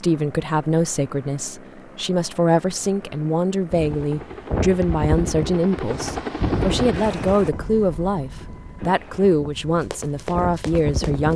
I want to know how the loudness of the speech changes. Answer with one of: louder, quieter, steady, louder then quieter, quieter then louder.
steady.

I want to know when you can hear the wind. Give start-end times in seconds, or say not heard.
3.7-11.3.